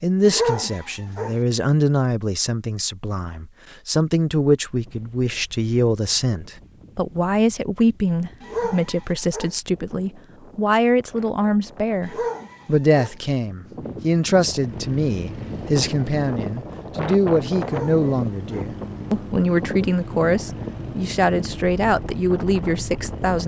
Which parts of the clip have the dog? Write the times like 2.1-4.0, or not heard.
0.2-1.4, 8.4-9.6, 12.0-13.2, 17.6-18.7.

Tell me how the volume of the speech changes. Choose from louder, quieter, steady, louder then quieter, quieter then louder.
steady.